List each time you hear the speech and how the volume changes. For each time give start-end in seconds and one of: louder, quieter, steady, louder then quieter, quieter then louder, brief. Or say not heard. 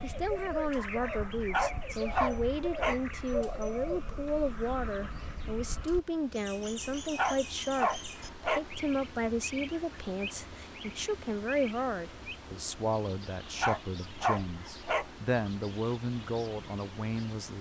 0.0-17.5 steady.